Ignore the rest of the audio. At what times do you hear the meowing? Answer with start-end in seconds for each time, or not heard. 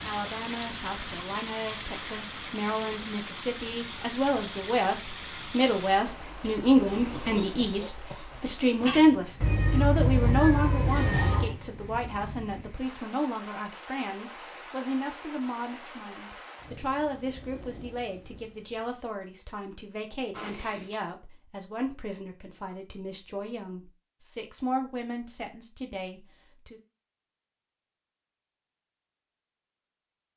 9.4-11.6.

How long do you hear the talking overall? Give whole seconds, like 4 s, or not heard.
27 s.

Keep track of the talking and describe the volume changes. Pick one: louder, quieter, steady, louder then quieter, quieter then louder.
louder then quieter.